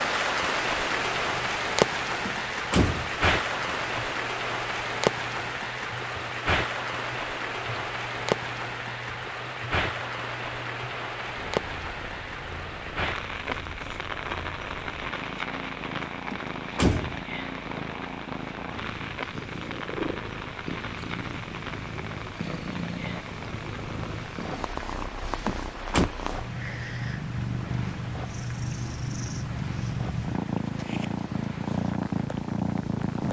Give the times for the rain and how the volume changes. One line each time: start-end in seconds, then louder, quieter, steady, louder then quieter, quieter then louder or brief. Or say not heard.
0.0-33.2 quieter.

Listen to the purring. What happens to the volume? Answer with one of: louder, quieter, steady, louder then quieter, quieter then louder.
louder.